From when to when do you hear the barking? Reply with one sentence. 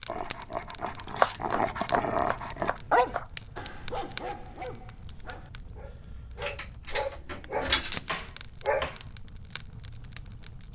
You can hear the barking from 0.1 to 8.9 s.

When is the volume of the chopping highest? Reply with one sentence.
The volume of the chopping peaks at 1 second.